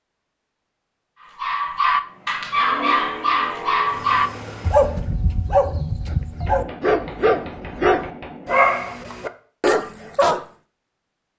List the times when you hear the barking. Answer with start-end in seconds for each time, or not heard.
1.4-10.4.